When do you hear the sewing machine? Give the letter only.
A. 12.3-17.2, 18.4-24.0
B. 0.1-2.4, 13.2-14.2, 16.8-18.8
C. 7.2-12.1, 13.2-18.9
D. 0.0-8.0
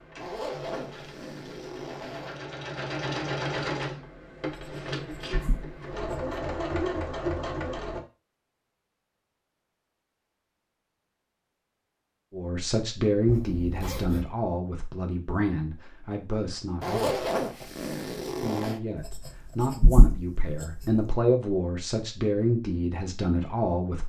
D.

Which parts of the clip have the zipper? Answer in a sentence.
You can hear the zipper from 0.1 to 2.4 s, from 13.2 to 14.2 s and from 16.8 to 18.8 s.